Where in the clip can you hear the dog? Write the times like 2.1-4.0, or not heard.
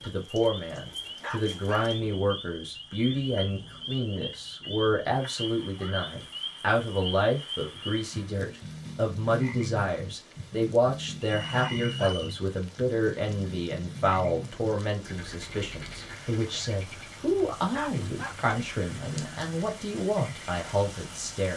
1.2-1.9, 11.5-12.2, 17.7-18.4.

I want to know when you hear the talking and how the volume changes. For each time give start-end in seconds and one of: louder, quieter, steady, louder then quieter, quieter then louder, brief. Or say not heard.
0.0-21.5 steady.